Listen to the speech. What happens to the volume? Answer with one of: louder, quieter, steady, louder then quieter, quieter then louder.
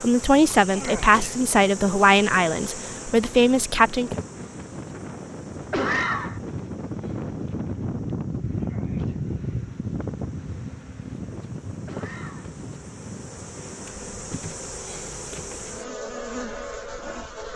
quieter then louder.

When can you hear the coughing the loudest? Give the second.
6 s.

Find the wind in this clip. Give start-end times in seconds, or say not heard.
0.0-17.5.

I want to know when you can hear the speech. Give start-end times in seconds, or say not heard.
0.0-4.2.